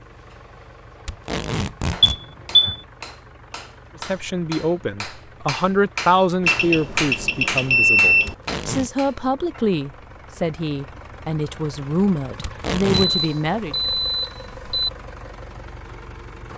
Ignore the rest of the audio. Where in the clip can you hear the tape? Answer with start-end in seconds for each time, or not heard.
1.1-2.2, 8.2-8.9, 12.4-13.2.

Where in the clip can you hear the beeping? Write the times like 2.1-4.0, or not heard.
2.0-2.8, 6.5-8.3, 13.0-14.9.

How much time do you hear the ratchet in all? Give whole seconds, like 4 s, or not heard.
not heard.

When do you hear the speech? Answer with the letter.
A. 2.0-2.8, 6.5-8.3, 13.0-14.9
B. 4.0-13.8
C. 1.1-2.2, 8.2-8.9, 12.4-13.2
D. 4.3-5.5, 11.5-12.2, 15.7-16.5
B.